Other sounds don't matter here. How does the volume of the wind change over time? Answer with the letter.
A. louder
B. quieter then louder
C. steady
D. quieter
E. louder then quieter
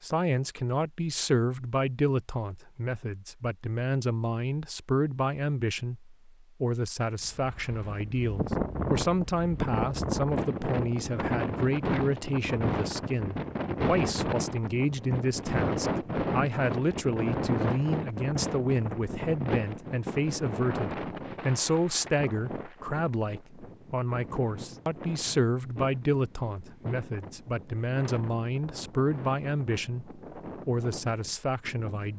D.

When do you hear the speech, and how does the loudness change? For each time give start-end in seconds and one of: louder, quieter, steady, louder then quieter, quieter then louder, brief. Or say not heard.
0.0-32.1 steady.